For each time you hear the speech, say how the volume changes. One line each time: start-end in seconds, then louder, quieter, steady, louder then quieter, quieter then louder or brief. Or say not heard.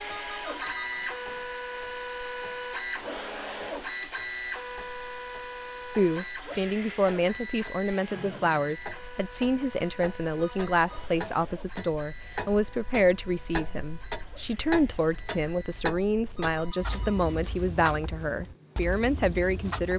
6.0-19.9 steady.